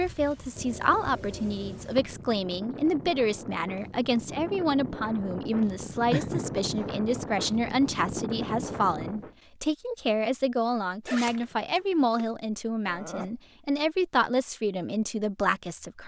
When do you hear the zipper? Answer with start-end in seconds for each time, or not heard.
11.1-12.2.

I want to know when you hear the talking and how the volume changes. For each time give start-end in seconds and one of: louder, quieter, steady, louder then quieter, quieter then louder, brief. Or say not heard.
0.0-16.0 steady.